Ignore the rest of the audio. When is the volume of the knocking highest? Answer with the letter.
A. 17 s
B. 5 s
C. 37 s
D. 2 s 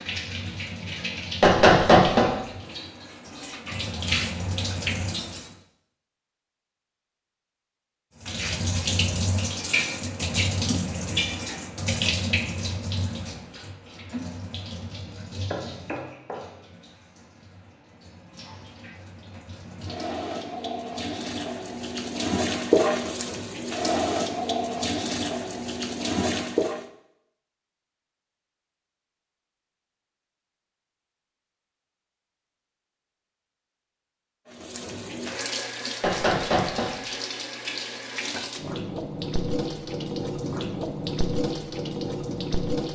D.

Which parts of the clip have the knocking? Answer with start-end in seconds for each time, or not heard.
1.4-2.3, 15.5-16.4, 36.0-36.9.